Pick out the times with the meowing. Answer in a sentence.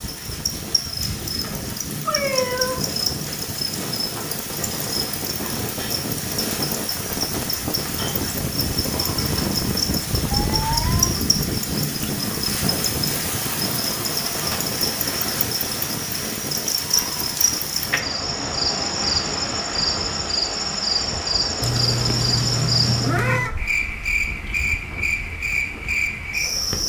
The meowing can be heard from 2.0 to 2.9 s, from 10.3 to 11.1 s and from 21.6 to 23.6 s.